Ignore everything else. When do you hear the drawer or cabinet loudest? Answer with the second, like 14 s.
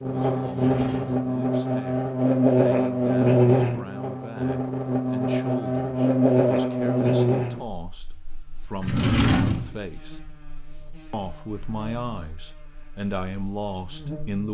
9 s.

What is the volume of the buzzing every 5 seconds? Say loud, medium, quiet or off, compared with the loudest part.
loud, loud, quiet.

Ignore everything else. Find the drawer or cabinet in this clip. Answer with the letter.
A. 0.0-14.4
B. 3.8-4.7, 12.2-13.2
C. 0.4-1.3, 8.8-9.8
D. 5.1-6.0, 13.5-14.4
C.